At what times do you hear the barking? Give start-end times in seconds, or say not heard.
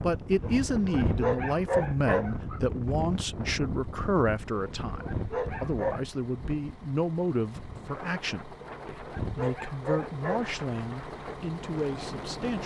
0.4-2.6, 4.5-6.0, 8.6-10.5.